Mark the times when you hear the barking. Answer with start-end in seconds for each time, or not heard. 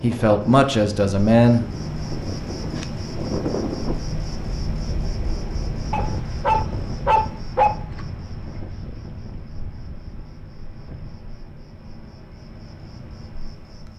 5.9-7.7.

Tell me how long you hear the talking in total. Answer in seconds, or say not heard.
2 s.